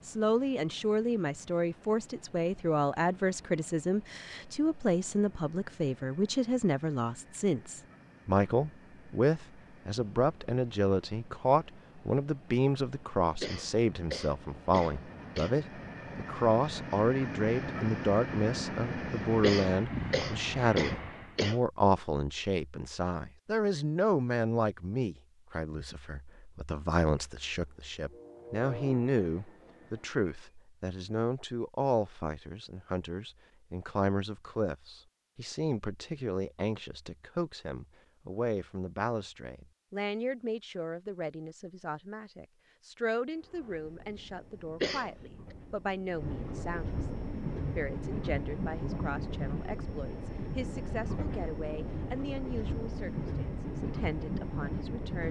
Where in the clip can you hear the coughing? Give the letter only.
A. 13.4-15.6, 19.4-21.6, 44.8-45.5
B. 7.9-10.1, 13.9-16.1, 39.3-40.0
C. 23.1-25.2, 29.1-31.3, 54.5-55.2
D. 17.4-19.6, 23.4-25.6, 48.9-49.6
A.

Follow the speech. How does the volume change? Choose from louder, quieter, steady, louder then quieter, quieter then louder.
quieter.